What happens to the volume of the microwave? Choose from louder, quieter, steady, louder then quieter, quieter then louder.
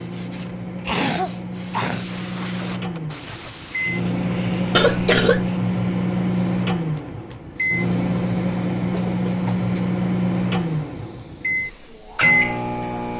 louder.